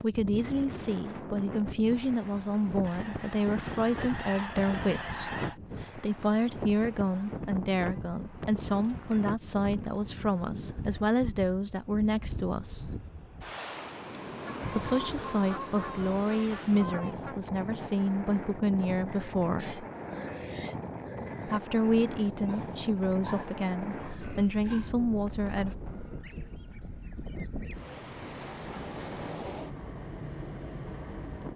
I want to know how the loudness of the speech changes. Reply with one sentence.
The volume of the speech stays about the same.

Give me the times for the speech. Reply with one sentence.
You can hear the speech from 0.0 to 13.0 s, from 14.7 to 19.8 s and from 21.4 to 25.8 s.